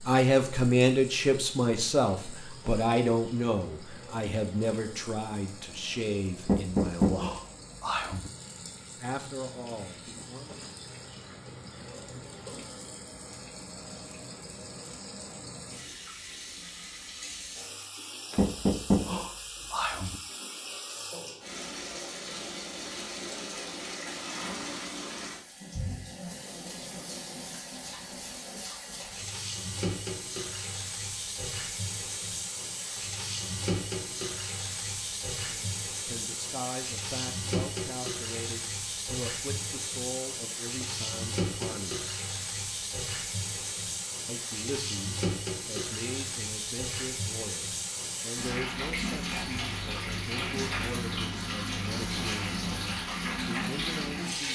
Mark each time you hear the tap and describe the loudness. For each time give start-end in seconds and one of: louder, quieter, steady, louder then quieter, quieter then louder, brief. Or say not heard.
0.0-54.5 louder.